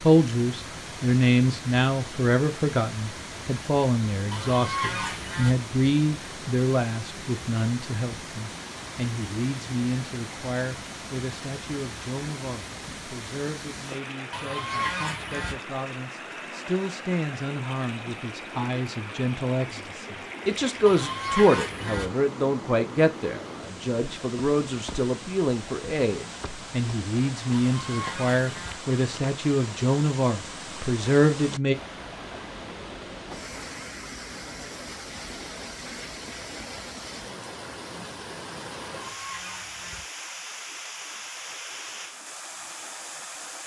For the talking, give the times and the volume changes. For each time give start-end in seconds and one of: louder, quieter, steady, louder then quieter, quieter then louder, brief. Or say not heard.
0.0-31.8 quieter then louder.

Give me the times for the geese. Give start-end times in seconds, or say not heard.
4.3-5.5, 14.3-15.6, 20.9-22.1, 27.5-28.8, 39.0-40.0.